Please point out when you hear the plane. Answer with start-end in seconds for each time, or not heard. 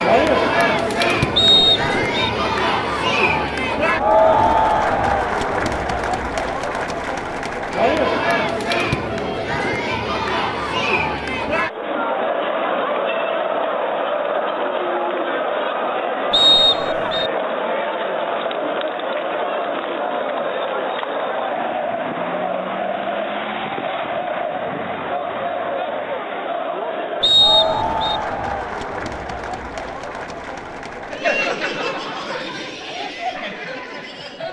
not heard.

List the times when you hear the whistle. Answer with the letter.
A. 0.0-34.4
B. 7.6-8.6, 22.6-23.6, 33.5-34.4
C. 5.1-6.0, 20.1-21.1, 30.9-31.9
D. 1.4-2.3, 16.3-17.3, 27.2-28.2
D.